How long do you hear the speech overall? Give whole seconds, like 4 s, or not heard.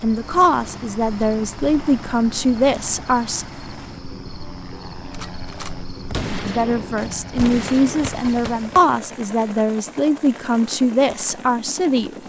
9 s.